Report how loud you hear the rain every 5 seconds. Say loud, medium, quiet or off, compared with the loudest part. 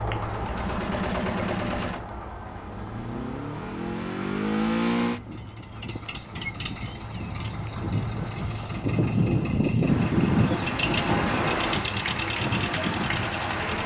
medium, medium, loud.